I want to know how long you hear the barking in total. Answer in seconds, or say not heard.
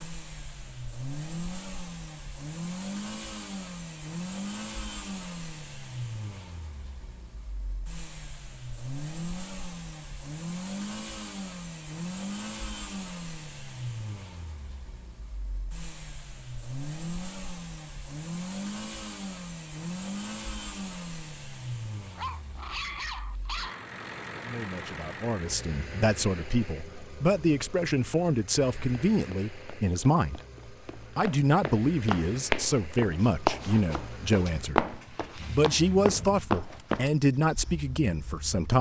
2 s.